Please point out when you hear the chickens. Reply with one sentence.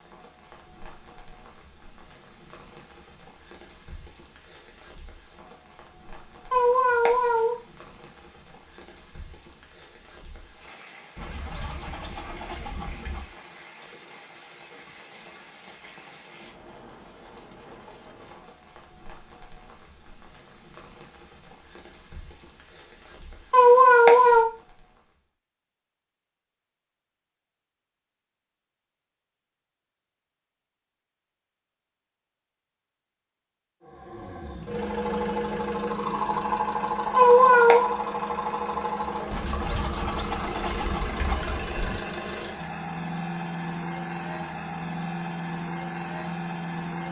The chickens can be heard from 11.2 to 13.3 s and from 39.3 to 42.0 s.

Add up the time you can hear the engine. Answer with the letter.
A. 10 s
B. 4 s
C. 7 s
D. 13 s
D.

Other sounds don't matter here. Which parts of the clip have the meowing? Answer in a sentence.
You can hear the meowing from 6.5 to 7.5 s, from 23.5 to 24.4 s and from 37.1 to 38.0 s.